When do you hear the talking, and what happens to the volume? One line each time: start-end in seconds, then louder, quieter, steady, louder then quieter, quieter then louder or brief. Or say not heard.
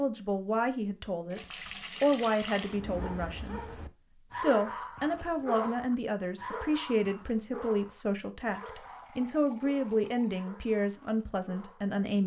0.0-12.2 steady.